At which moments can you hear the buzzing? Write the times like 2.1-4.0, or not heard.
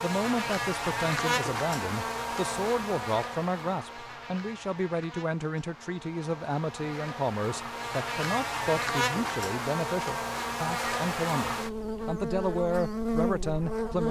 0.0-14.0.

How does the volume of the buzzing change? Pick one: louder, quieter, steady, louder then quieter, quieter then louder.
quieter then louder.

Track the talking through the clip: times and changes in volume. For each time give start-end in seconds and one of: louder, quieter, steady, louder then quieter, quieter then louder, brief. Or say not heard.
0.0-14.0 steady.